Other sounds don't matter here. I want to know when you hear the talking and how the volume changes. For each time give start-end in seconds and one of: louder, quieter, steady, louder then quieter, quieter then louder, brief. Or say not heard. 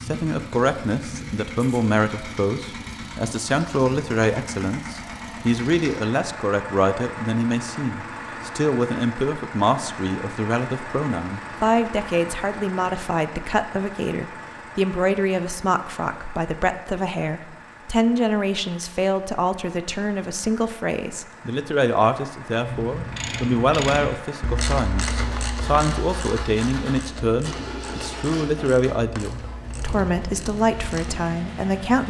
0.0-32.0 steady.